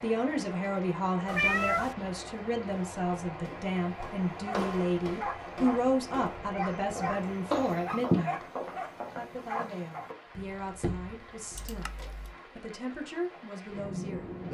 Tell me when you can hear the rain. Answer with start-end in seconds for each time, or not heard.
0.0-14.4.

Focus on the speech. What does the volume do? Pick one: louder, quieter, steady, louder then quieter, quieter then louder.
quieter.